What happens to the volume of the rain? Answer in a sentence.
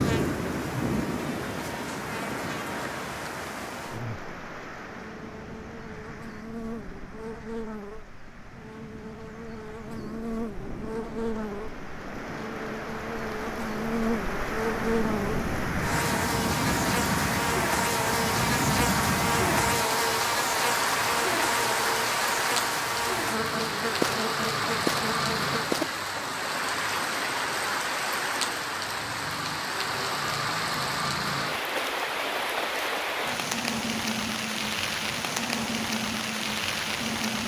The loudness of the rain goes up.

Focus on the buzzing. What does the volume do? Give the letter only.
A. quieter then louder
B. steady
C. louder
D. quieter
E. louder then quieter
C.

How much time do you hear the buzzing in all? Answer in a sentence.
The buzzing can be heard for 26 seconds in total.